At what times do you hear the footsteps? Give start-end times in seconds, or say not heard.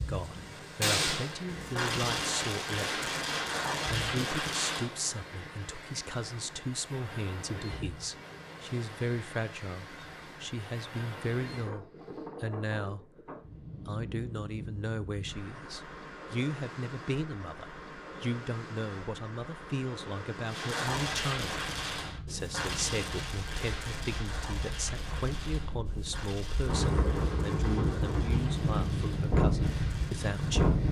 not heard.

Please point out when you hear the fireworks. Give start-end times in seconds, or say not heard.
0.0-5.0, 20.4-30.8.